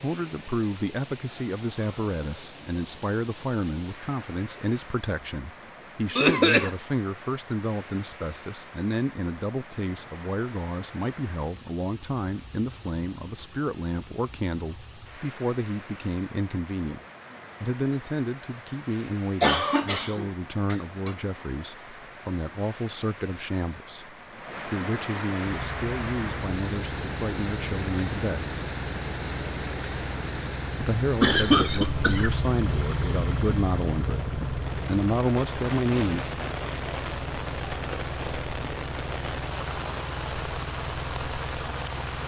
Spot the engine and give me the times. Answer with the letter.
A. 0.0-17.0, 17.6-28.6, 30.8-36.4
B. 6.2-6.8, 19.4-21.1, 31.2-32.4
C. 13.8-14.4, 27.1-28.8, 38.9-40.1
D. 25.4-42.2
D.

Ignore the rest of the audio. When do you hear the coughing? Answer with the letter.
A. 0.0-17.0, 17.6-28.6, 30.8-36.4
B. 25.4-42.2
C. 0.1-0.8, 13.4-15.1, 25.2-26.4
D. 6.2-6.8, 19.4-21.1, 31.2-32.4
D.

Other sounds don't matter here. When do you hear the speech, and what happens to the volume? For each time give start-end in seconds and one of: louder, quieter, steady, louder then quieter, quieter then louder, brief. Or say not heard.
0.0-17.0 steady
17.6-28.6 steady
30.8-36.4 louder.